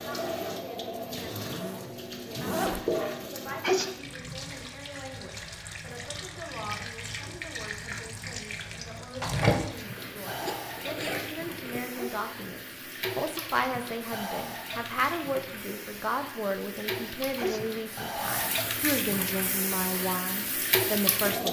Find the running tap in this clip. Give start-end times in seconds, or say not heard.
0.0-21.4.